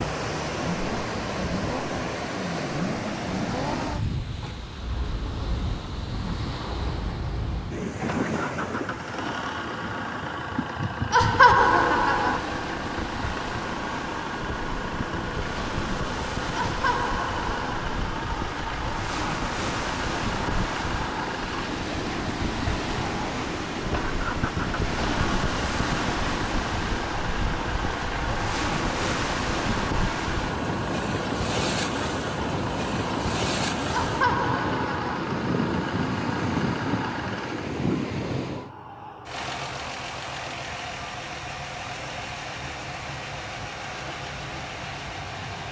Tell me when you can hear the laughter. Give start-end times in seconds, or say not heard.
11.1-12.4, 16.6-17.6, 33.9-35.2.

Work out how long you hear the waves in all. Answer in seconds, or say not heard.
39 s.